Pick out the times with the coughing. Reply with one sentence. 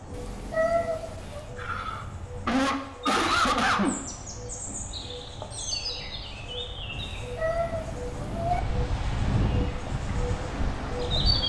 You can hear the coughing from 1.6 to 4.0 s.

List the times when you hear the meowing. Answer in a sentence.
You can hear the meowing from 0.1 to 1.5 s and from 7.2 to 8.6 s.